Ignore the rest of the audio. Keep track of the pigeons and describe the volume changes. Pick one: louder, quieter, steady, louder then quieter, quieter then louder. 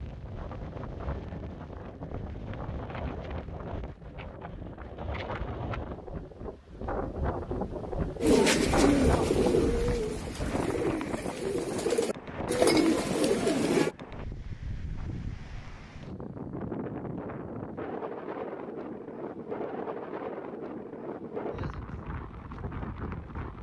quieter then louder.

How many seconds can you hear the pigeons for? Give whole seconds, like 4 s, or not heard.
6 s.